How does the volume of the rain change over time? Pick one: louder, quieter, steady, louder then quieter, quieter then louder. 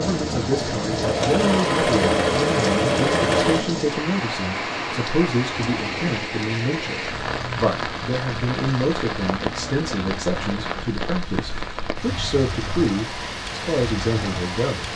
steady.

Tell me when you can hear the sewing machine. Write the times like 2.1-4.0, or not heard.
0.1-3.6.